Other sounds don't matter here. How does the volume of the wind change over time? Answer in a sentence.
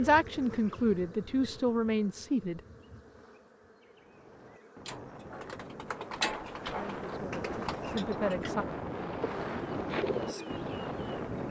The loudness of the wind goes up.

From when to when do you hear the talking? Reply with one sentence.
The talking can be heard from 0.0 to 2.6 s and from 6.8 to 8.7 s.